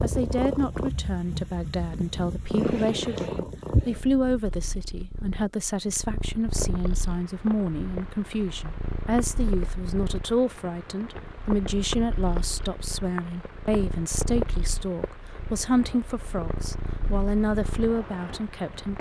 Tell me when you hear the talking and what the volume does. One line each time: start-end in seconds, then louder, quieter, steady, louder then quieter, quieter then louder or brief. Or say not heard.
0.0-18.9 steady.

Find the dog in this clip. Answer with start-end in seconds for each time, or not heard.
not heard.